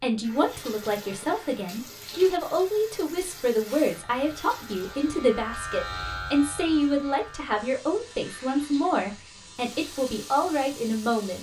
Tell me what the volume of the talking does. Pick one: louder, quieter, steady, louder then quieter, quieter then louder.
steady.